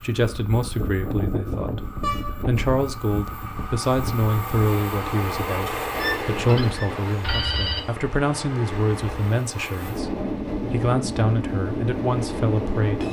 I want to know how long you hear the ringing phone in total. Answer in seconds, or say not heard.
2 s.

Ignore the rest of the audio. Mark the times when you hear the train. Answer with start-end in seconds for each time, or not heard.
0.0-13.0.